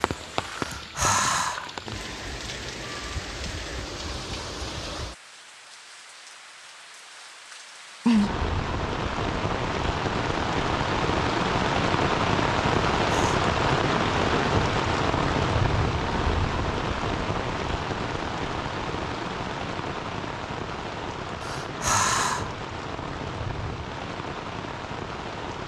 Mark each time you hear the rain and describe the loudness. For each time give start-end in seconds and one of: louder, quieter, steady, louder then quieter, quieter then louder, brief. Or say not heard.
0.0-25.6 louder then quieter.